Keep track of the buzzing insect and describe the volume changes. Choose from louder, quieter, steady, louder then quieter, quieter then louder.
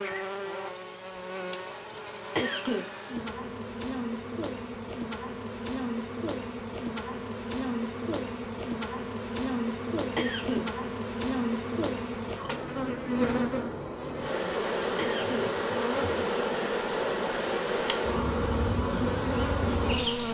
louder.